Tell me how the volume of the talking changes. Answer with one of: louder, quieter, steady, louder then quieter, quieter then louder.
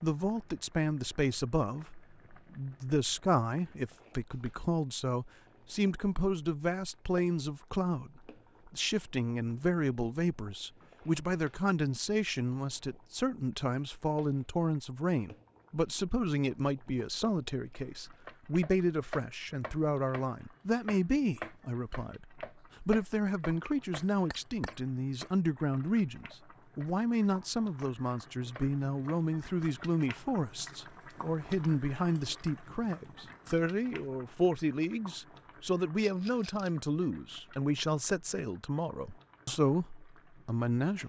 steady.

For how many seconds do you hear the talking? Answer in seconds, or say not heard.
41 s.